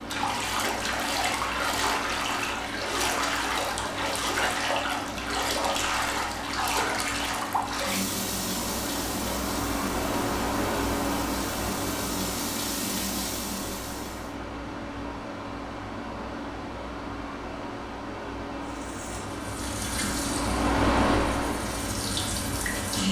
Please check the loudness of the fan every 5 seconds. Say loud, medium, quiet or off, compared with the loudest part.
medium, medium, loud, medium, loud.